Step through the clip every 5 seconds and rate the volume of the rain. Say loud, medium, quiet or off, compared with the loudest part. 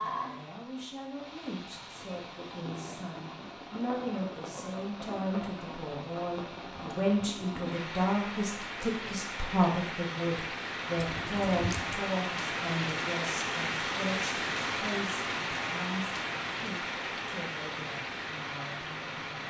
medium, medium, loud, loud.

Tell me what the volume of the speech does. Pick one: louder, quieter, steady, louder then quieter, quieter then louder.
louder then quieter.